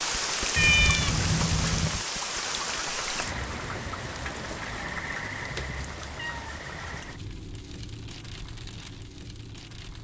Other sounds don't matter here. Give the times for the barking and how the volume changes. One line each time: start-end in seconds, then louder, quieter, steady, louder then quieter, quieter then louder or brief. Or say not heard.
not heard.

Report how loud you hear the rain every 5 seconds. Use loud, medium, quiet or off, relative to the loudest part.
loud, medium.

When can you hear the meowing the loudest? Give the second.
1 s.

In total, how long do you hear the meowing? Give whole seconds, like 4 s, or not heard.
2 s.